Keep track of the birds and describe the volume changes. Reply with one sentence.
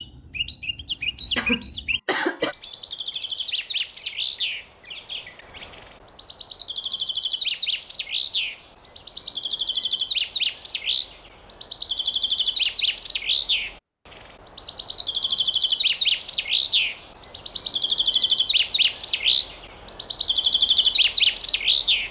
The loudness of the birds goes up.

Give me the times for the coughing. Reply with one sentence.
You can hear the coughing from 1.4 to 2.5 s.